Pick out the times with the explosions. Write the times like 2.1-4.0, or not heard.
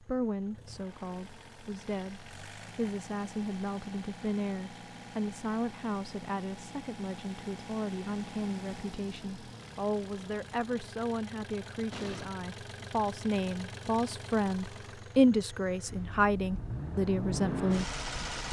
11.9-12.3.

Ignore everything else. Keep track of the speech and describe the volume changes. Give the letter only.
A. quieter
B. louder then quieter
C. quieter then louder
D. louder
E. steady
D.